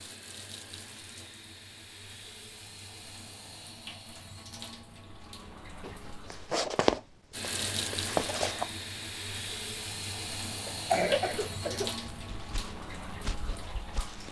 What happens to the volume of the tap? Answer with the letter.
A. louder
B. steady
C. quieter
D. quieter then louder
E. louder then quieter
A.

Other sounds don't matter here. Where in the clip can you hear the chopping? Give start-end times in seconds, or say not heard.
not heard.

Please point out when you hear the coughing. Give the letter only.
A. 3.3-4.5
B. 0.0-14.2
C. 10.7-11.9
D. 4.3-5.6
C.